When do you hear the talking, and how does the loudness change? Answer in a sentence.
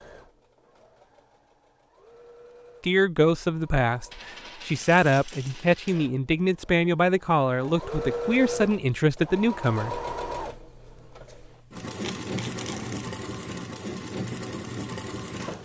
You can hear the talking from 2.8 to 10.0 s, at a steady volume.